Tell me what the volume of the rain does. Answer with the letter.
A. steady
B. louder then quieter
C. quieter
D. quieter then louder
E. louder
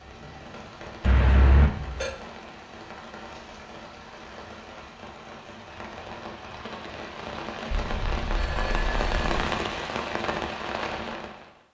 E.